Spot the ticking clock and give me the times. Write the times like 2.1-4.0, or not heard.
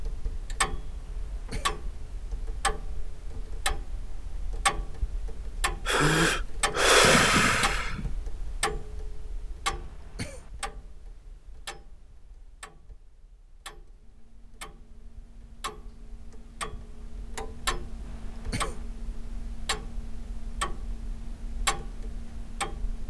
0.0-23.0.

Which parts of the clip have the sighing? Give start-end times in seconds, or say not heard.
5.8-8.1.